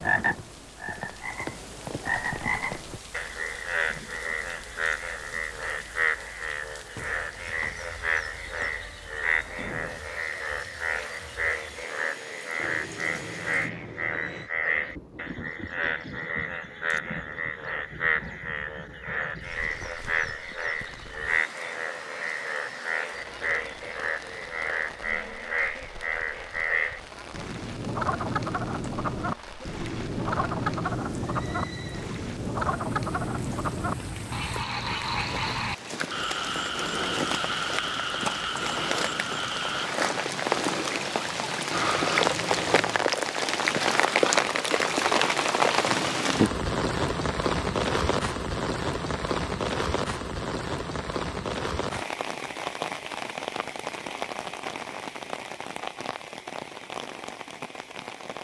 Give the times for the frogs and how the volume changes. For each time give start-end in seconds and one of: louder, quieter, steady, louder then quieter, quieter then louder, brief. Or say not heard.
0.0-39.9 steady.